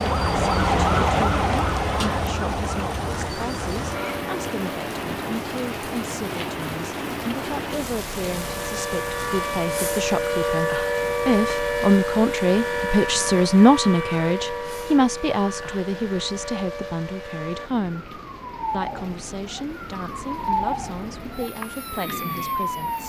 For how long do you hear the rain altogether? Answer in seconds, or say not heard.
23 s.